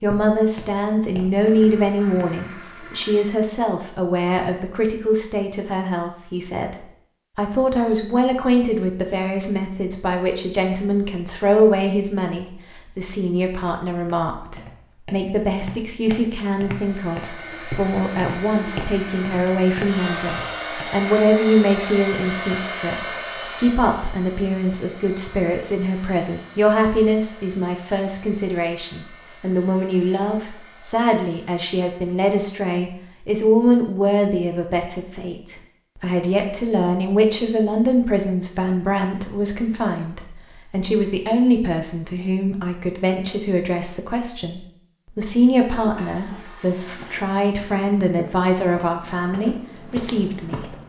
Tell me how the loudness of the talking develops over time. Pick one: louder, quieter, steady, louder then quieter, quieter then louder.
steady.